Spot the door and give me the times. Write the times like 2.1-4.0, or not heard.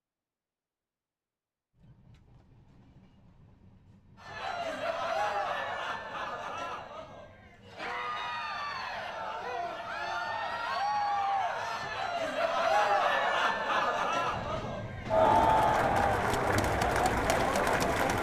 not heard.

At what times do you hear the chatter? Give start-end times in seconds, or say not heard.
4.2-18.1.